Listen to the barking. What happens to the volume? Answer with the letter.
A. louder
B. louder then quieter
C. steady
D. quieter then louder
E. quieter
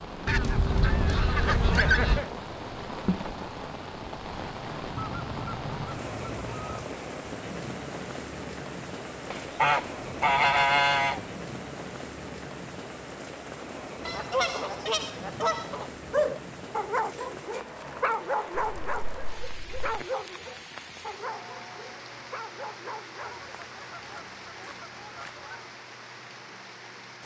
E.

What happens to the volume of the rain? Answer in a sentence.
The loudness of the rain goes down.